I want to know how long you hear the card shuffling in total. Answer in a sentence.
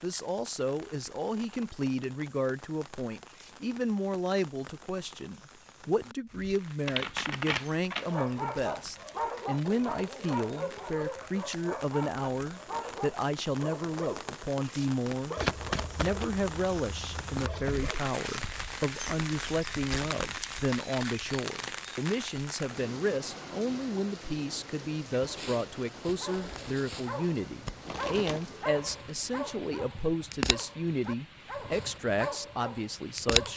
You can hear the card shuffling for 5 seconds altogether.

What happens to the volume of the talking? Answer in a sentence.
The volume of the talking stays about the same.